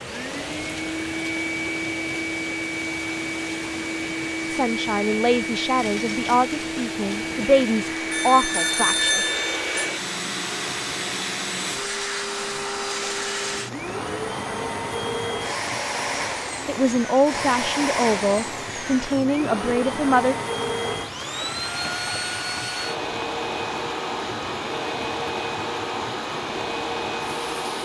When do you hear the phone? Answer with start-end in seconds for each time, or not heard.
8.1-9.9.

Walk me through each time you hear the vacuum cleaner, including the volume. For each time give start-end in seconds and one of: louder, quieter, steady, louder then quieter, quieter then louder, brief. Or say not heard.
0.0-27.8 steady.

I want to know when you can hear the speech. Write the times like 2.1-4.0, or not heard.
4.5-9.3, 16.6-20.4.